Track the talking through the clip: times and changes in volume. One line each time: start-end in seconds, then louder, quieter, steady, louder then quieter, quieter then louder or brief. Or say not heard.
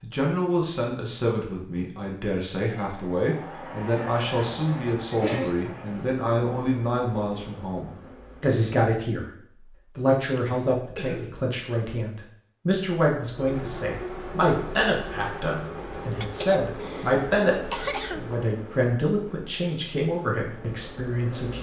0.0-21.5 steady.